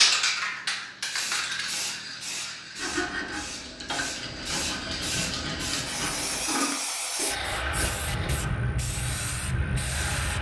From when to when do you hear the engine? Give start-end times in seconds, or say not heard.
7.3-10.3.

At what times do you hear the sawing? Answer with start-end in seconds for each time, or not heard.
2.8-8.1.